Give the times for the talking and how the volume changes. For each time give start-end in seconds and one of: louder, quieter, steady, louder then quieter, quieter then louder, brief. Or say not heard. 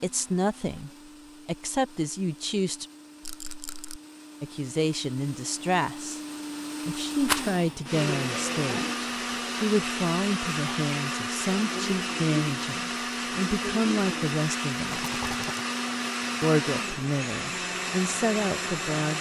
0.0-2.9 brief
4.4-6.2 brief
6.8-15.1 steady
16.4-19.1 brief.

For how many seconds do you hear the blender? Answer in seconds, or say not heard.
19 s.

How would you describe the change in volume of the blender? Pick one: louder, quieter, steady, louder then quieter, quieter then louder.
louder.